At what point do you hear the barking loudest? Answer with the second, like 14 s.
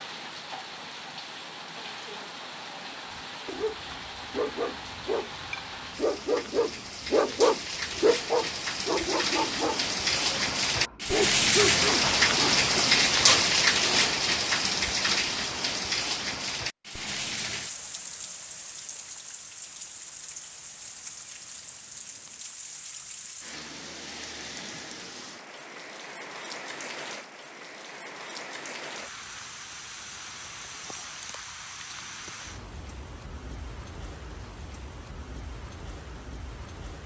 7 s.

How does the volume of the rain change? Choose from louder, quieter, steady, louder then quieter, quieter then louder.
louder then quieter.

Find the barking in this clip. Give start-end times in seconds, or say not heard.
3.1-13.4.